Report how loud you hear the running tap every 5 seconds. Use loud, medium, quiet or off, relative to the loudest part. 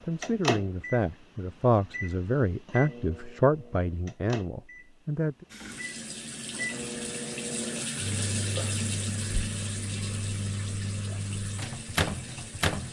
off, loud, medium.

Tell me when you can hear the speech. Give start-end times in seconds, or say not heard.
0.1-5.5.